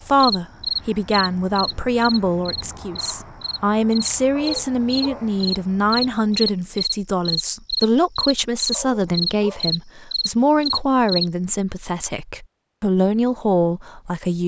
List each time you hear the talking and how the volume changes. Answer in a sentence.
You can hear the talking from 0.0 to 14.4 s, at a steady volume.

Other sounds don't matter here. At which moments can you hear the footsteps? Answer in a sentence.
The footsteps can't be heard in this clip.